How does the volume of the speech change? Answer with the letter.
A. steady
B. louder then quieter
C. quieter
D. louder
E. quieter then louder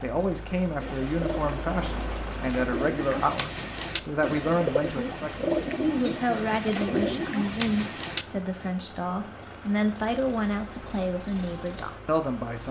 A.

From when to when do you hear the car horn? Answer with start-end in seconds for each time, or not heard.
not heard.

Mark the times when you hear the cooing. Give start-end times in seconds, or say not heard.
0.8-8.2.